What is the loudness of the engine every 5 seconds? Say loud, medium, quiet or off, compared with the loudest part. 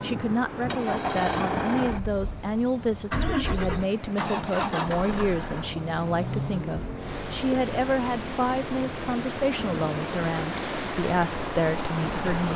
loud, medium, medium.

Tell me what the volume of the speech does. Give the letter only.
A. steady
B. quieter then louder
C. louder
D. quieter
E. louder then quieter
A.